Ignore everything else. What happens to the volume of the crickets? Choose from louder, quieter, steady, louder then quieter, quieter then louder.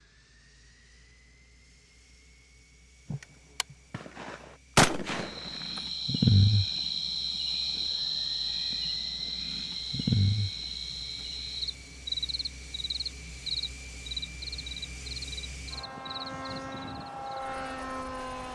quieter.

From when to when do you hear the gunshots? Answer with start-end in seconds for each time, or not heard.
3.1-5.8.